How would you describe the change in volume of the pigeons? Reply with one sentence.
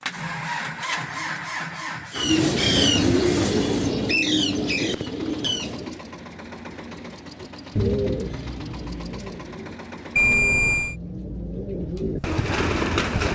The volume of the pigeons goes down, then up.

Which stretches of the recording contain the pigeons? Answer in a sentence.
You can hear the pigeons from 2.1 to 6.0 s and from 7.4 to 13.3 s.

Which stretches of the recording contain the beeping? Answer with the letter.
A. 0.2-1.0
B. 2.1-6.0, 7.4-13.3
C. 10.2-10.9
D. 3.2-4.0
C.